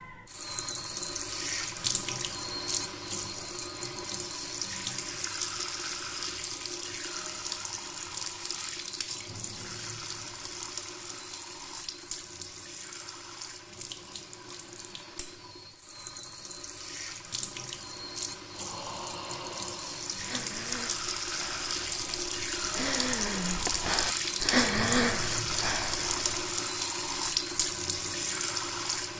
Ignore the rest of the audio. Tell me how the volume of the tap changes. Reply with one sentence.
The loudness of the tap goes down, then up.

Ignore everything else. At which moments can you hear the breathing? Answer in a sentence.
The breathing can be heard from 18.5 to 26.6 s.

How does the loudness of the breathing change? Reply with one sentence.
The volume of the breathing goes up.